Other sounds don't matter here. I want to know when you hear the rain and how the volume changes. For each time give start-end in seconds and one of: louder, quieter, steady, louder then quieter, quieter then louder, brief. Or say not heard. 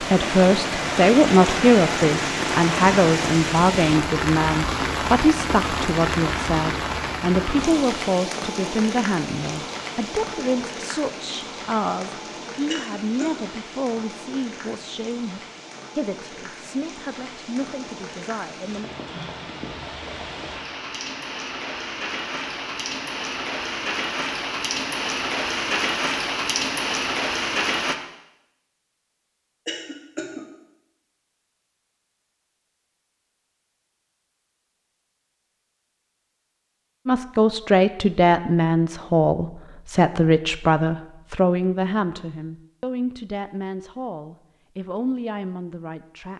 0.0-27.9 quieter then louder.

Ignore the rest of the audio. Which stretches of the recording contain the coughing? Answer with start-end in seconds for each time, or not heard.
12.7-13.4, 29.6-30.4.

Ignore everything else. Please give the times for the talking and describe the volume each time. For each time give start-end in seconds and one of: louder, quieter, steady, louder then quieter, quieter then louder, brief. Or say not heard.
0.0-18.9 quieter
37.0-46.3 quieter.